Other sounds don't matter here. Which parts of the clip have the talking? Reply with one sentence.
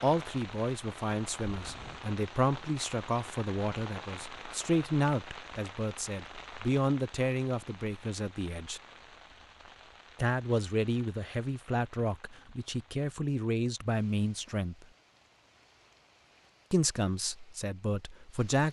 You can hear the talking from 0.0 to 8.8 s, from 10.2 to 14.8 s and from 16.7 to 18.6 s.